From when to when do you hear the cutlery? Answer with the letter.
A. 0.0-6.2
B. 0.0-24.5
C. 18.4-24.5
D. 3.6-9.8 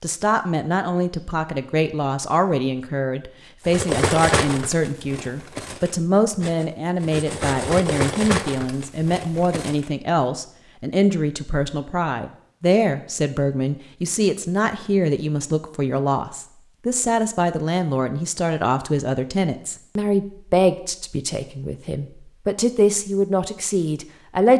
D.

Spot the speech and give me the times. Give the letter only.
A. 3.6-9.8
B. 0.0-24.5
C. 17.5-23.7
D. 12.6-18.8
B.